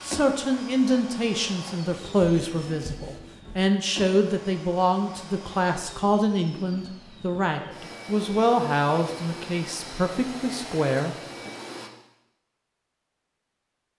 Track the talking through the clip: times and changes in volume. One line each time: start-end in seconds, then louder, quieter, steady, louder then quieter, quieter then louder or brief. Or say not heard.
0.0-11.5 steady.